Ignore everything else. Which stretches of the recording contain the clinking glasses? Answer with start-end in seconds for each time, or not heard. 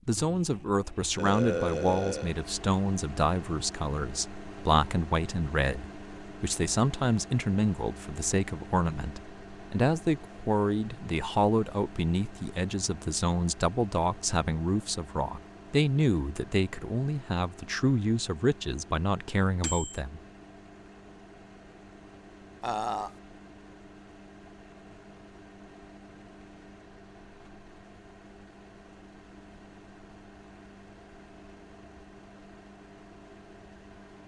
not heard.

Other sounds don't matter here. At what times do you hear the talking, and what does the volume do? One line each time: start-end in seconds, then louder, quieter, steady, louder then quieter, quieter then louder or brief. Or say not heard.
0.1-20.2 steady.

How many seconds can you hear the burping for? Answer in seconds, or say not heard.
2 s.